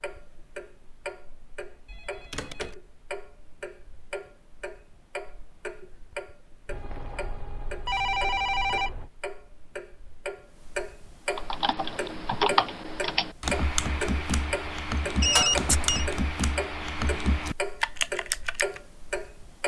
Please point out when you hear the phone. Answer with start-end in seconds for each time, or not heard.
1.9-2.8, 6.7-9.1, 15.2-16.1.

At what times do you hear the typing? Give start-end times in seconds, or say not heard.
11.3-18.8.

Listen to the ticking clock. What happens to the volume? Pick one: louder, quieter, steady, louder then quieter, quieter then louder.
louder.